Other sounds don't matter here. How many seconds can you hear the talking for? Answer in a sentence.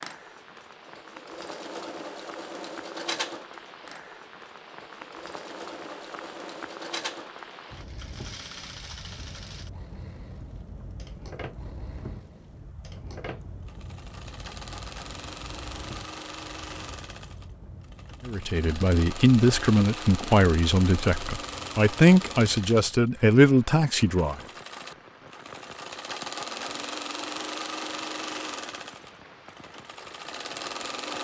The talking can be heard for 6 seconds in total.